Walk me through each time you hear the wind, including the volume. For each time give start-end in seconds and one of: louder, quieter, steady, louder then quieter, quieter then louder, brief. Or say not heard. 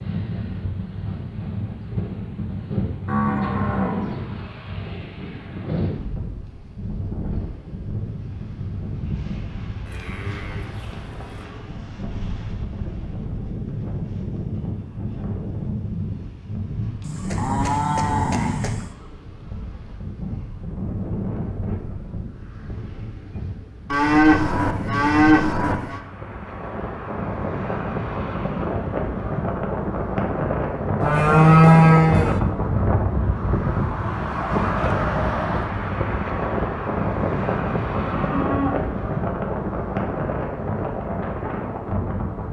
0.0-42.4 louder.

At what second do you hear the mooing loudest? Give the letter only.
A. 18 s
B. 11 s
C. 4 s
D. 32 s
D.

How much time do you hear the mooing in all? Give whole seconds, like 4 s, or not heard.
10 s.